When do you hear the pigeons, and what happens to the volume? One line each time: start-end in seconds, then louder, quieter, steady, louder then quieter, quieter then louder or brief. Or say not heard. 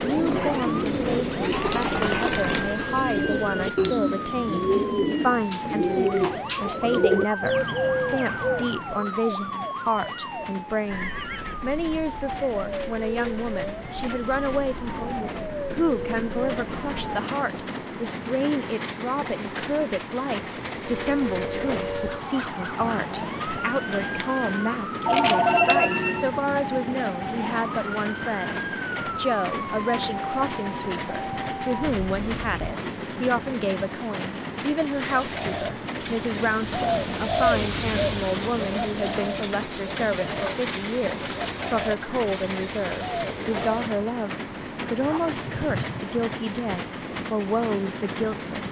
0.0-9.1 steady
34.8-44.0 louder then quieter.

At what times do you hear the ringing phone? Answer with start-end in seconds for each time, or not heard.
10.8-11.7, 25.1-26.3, 45.0-46.0.